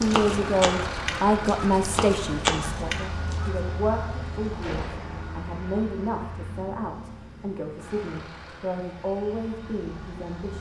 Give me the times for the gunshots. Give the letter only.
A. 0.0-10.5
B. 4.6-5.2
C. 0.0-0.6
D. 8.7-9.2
B.